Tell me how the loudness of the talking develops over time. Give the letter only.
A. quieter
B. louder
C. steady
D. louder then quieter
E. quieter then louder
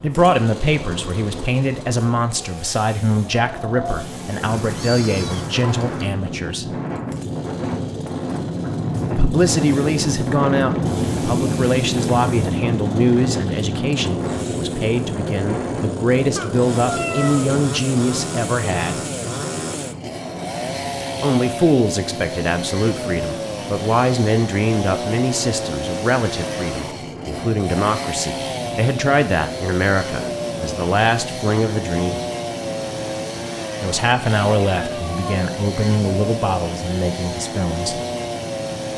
C.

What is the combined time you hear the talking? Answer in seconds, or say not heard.
32 s.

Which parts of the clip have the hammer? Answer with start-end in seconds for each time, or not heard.
not heard.